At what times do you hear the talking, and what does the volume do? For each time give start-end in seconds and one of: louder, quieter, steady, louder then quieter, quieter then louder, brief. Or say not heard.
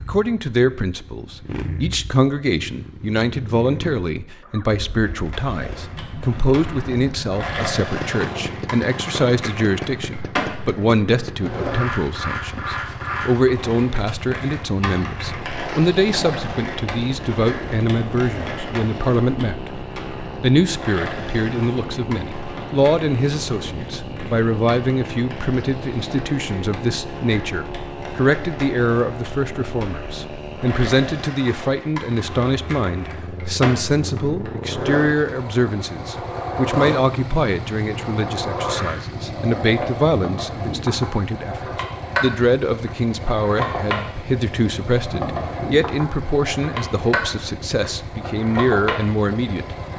0.1-19.7 steady
20.4-49.8 steady.